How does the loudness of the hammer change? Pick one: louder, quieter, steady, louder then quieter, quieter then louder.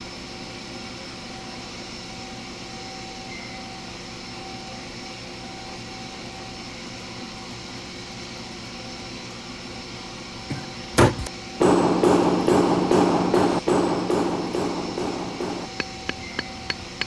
quieter.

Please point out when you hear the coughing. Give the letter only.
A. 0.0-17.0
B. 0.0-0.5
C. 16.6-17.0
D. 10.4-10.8
D.